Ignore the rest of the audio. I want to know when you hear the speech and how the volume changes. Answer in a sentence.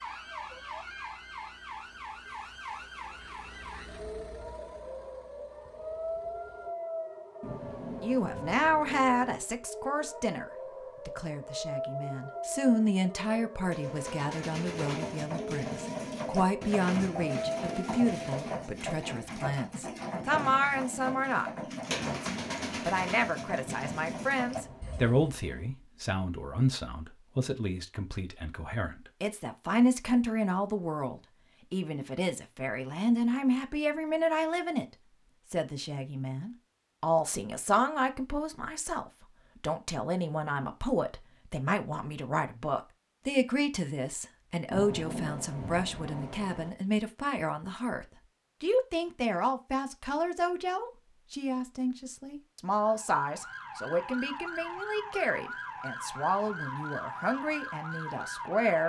The speech can be heard from 8.0 to 34.9 s, at a steady volume; and from 35.5 to 58.8 s, at a steady volume.